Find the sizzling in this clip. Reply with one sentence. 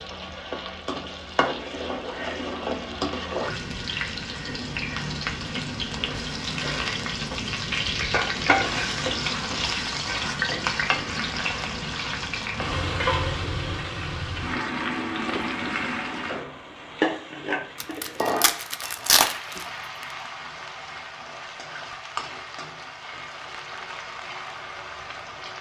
You can hear the sizzling from 0.0 to 25.5 s.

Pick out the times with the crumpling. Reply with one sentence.
You can hear the crumpling from 17.8 to 19.6 s.